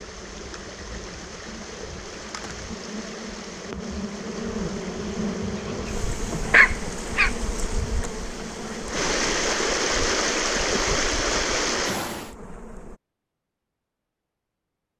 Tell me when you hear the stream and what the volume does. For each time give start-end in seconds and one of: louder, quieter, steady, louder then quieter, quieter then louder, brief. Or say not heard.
0.0-12.3 louder.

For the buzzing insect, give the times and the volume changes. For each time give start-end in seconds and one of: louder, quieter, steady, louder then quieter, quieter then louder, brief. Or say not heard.
0.0-13.0 louder then quieter.